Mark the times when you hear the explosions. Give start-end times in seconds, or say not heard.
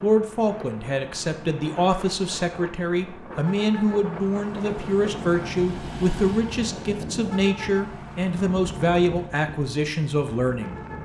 not heard.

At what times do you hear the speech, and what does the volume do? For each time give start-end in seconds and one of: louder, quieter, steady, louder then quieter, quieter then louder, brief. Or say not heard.
0.0-10.8 steady.